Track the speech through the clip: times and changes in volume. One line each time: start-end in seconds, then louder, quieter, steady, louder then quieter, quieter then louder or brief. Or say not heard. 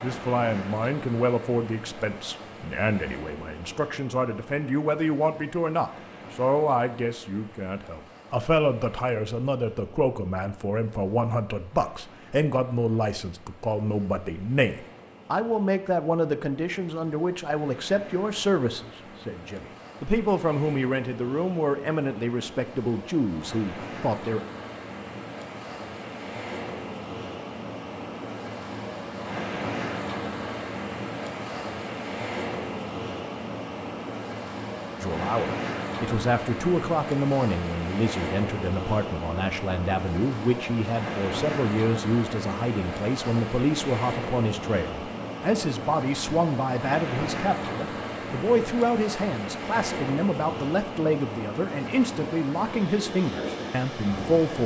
0.0-24.4 steady
35.0-54.6 steady.